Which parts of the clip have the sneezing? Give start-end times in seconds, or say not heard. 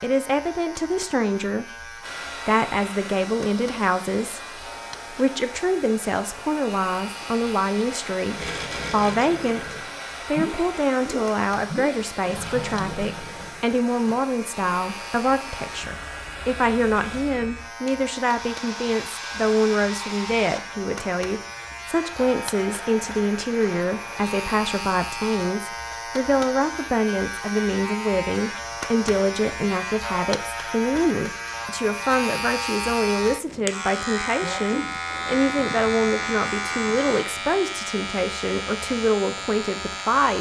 34.4-35.2.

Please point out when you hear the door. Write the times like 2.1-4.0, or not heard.
not heard.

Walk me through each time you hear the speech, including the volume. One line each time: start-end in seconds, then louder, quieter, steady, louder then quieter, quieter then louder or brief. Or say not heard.
0.0-40.3 steady.